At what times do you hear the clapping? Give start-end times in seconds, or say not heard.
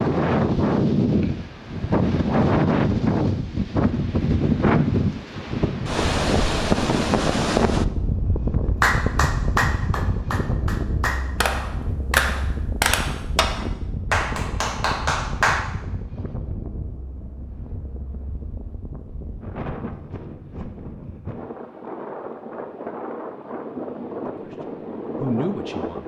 8.8-15.6.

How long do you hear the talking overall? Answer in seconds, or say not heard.
2 s.